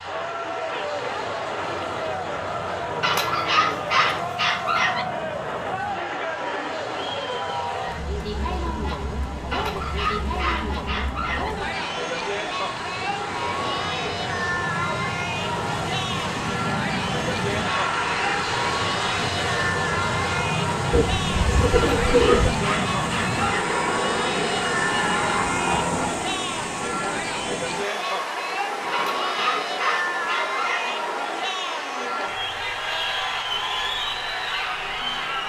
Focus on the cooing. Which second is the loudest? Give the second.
22 s.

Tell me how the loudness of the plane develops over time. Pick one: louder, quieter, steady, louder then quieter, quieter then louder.
louder.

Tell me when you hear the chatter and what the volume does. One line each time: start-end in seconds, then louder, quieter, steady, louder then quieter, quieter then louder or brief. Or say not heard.
0.0-35.4 steady.